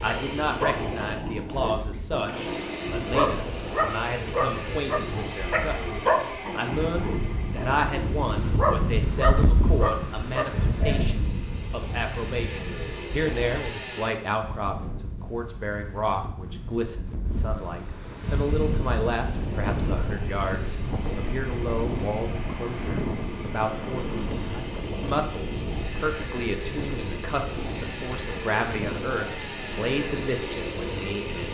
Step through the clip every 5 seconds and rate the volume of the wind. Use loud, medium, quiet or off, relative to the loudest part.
medium, loud, loud, loud, loud, medium, medium.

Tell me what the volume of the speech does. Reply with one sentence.
The loudness of the speech stays about the same.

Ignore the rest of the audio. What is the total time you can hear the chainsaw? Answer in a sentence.
The chainsaw can be heard for 27 seconds in total.